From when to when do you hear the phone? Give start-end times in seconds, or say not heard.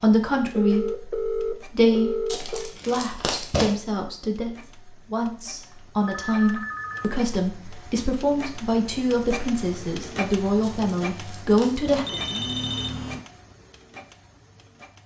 0.3-2.8, 5.7-7.2, 11.9-13.2.